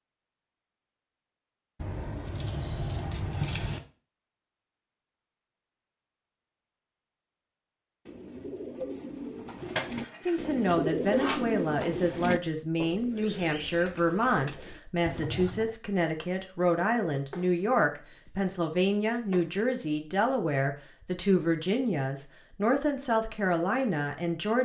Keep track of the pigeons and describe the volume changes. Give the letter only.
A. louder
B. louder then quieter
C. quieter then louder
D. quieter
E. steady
B.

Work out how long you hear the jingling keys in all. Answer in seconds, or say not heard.
6 s.